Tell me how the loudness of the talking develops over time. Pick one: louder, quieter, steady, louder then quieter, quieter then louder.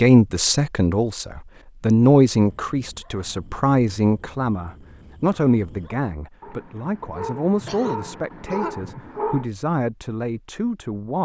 quieter.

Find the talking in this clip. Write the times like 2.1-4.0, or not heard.
0.0-11.2.